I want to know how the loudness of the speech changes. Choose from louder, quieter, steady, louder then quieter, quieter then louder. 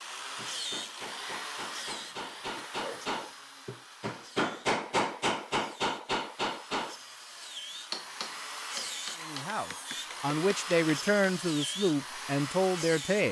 louder.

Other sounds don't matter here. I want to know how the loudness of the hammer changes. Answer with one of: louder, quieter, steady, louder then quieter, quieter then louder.
louder then quieter.